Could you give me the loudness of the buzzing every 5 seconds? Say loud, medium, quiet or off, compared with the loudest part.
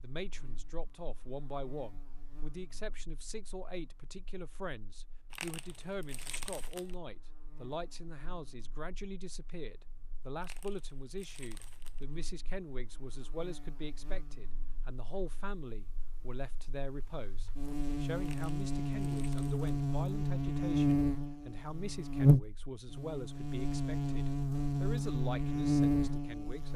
quiet, quiet, quiet, medium, loud, loud.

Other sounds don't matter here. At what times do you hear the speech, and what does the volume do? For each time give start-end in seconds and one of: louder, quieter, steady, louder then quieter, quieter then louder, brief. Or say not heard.
0.0-26.7 steady.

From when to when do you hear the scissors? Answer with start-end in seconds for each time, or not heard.
not heard.